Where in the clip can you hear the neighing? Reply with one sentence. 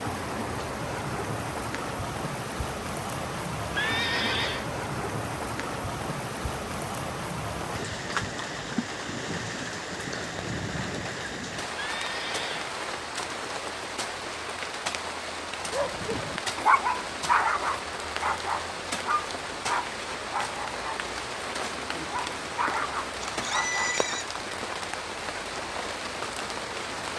You can hear the neighing from 3.7 to 4.7 s, from 11.8 to 12.7 s and from 23.2 to 24.3 s.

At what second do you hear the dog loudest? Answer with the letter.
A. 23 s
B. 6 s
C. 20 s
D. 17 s
D.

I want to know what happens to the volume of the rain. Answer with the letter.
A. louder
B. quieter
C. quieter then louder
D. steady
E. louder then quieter
D.